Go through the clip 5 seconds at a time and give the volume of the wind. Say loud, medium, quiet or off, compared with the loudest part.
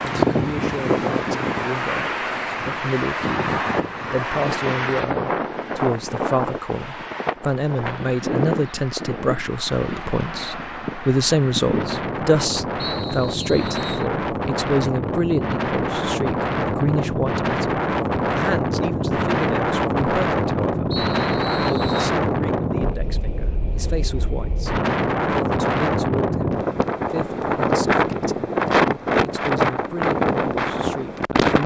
loud, medium, medium, loud, loud, loud, loud.